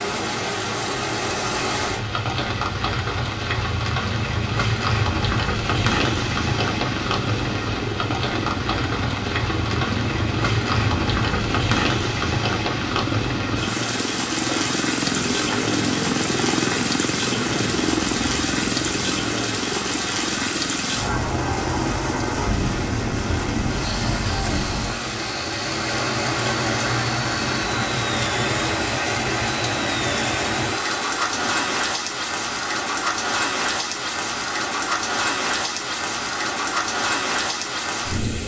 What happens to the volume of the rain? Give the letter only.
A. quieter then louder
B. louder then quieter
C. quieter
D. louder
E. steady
E.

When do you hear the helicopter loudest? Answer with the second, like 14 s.
16 s.